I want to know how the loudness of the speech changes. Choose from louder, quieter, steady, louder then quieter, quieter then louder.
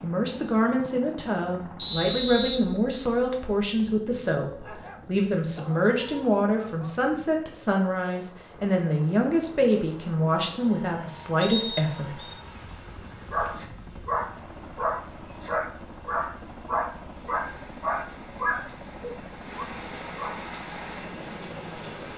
steady.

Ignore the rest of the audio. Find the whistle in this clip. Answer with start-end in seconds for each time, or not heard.
1.8-3.1, 11.4-12.3.